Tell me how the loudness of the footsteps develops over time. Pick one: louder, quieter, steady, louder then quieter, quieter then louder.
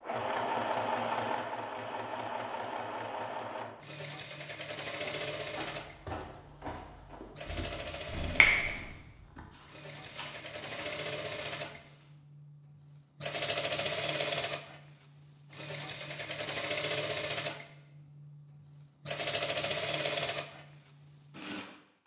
quieter.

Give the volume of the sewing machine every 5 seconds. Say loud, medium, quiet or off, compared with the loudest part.
loud, medium, loud, loud, loud.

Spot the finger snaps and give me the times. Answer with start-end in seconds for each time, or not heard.
8.1-8.8.